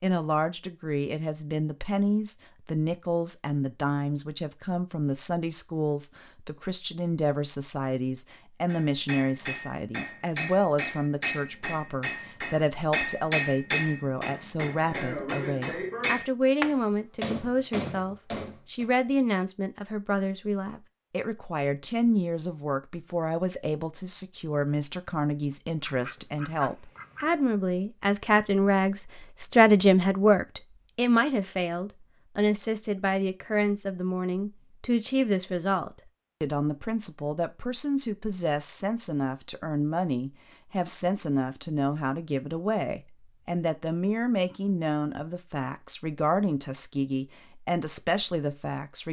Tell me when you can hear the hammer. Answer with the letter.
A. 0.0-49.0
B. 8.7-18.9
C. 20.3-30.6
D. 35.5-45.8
B.